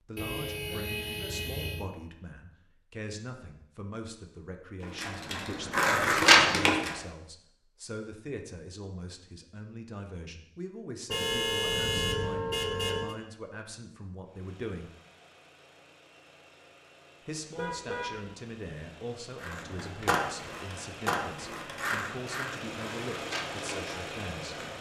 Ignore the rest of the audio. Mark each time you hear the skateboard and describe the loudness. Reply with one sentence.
The skateboard can be heard briefly from 5.0 to 7.0 s; and from 19.4 to 24.7 s, getting quieter.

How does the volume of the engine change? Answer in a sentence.
The volume of the engine goes up.